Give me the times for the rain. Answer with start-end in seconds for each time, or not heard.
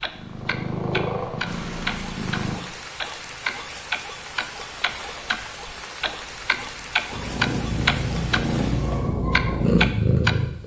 0.0-9.2.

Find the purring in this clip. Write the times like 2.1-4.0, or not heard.
0.1-2.6, 7.1-10.6.